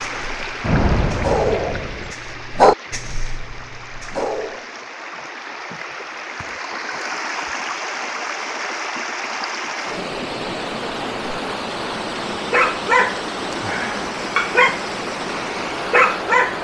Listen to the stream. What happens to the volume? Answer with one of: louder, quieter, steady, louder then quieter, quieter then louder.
louder.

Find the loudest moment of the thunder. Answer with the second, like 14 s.
1 s.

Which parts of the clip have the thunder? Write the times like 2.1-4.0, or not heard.
0.6-2.1.